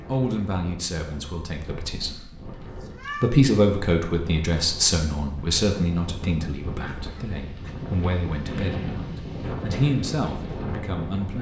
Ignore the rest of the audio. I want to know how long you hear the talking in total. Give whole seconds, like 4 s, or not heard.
11 s.